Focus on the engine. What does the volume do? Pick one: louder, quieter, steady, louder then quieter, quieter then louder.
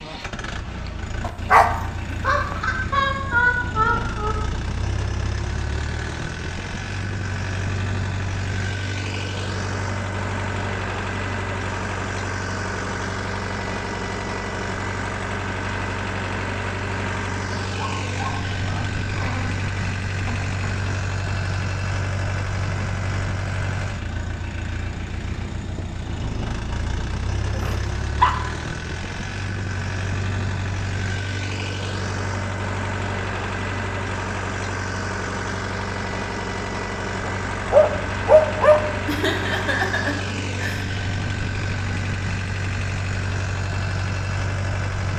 steady.